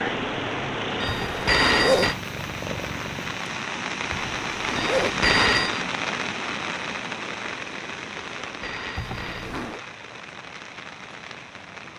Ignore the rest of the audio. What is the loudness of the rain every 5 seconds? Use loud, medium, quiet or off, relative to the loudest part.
loud, loud, medium.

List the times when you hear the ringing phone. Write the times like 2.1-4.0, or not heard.
1.0-2.1, 4.8-5.8, 8.4-9.5.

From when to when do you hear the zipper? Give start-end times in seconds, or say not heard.
1.1-2.1, 4.1-5.2, 8.9-9.8.